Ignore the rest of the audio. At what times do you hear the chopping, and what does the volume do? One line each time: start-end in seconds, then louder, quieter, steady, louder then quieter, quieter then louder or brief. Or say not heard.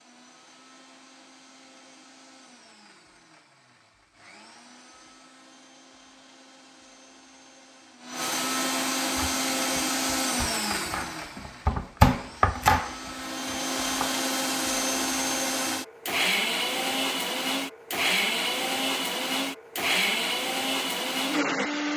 9.2-14.2 louder then quieter.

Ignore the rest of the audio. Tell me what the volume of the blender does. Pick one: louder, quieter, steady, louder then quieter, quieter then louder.
louder.